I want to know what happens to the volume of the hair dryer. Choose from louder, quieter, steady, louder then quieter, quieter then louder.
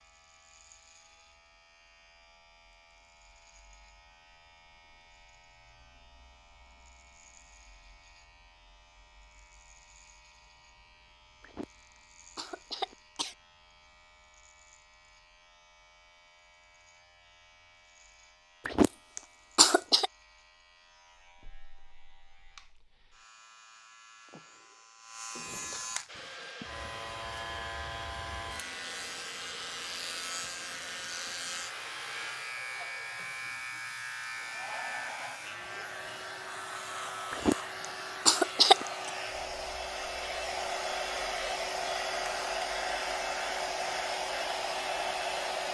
louder.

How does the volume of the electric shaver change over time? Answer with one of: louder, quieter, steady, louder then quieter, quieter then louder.
louder.